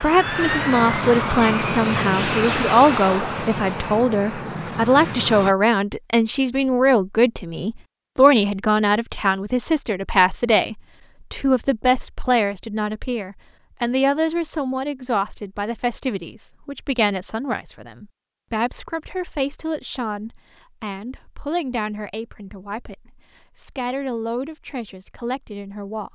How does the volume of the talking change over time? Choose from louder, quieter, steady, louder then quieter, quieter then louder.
quieter.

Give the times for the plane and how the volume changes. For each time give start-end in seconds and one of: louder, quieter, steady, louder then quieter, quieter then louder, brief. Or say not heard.
0.0-5.5 quieter.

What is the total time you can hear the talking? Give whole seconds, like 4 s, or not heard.
26 s.